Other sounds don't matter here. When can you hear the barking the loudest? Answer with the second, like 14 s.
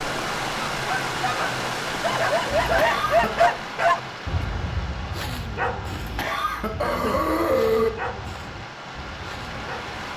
3 s.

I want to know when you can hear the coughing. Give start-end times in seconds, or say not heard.
2.5-3.5, 5.9-7.9.